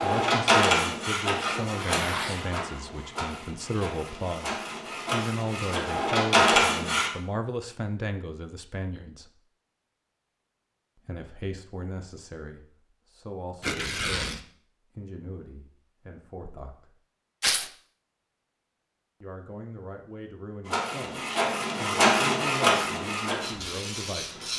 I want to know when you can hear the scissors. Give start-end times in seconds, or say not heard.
not heard.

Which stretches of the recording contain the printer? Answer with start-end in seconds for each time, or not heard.
0.0-7.1, 20.6-24.5.